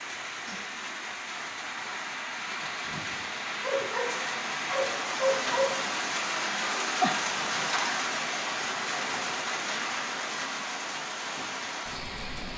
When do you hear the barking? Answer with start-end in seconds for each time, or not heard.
3.6-5.8.